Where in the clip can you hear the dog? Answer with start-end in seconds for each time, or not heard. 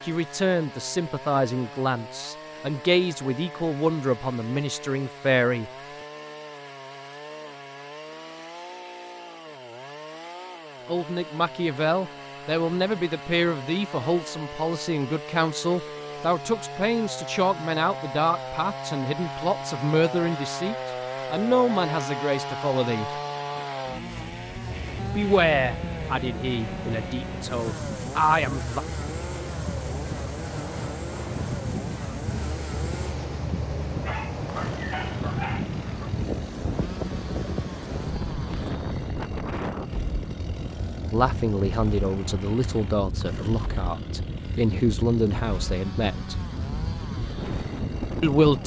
34.0-35.9.